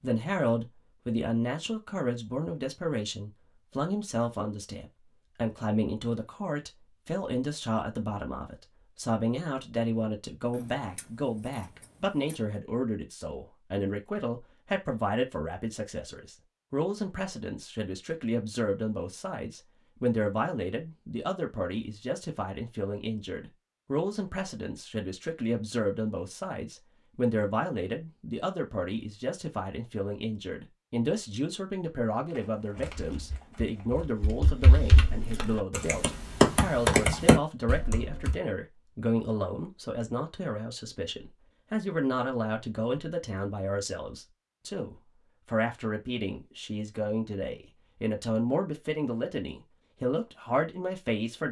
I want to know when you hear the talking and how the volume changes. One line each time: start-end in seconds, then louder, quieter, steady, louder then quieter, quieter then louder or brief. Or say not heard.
0.0-51.4 steady.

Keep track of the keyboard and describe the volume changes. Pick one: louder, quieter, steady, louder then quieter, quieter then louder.
louder.